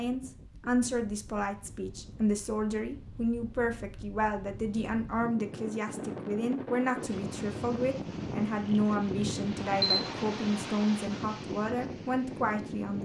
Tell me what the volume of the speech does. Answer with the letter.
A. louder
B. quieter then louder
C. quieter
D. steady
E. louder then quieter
D.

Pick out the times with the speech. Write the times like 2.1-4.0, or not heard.
0.0-13.0.